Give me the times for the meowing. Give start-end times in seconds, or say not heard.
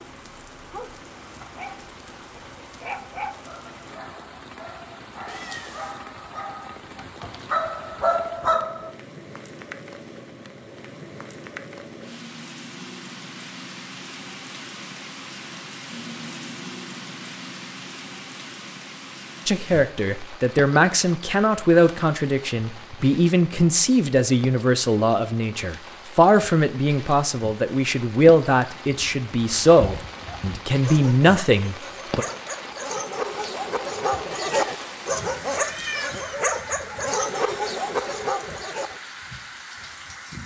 5.2-6.0, 34.3-36.1.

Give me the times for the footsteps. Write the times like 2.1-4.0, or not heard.
not heard.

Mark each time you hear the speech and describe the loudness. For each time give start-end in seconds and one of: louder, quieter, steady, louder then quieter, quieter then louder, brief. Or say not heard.
19.4-32.2 steady.